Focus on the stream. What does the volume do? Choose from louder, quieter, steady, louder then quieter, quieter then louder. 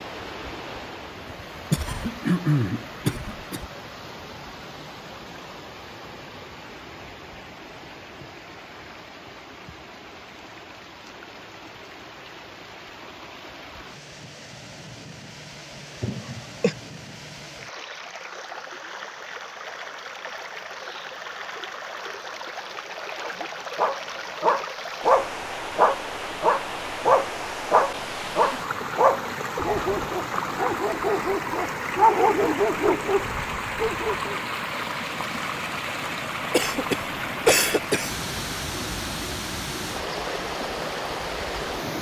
louder.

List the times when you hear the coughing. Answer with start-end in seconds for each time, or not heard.
1.7-3.6, 16.0-16.8, 36.5-38.1.